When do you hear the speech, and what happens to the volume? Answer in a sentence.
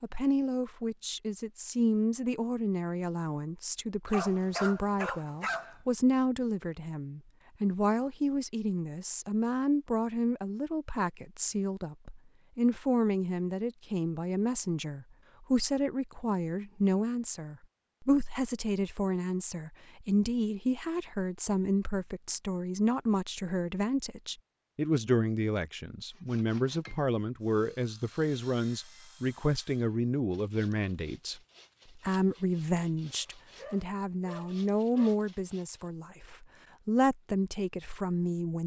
You can hear the speech from 0.0 to 38.6 s, at a steady volume.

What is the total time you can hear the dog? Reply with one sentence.
The dog can be heard for 4 seconds in total.